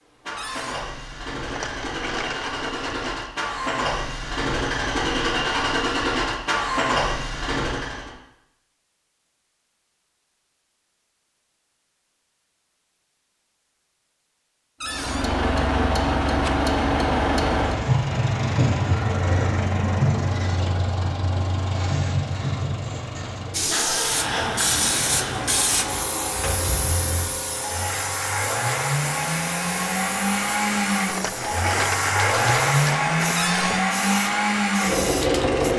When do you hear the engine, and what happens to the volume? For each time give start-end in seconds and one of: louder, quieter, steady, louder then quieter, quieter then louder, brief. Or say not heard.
0.1-8.2 louder
14.8-35.7 quieter then louder.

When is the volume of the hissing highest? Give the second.
25 s.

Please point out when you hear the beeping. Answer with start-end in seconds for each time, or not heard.
not heard.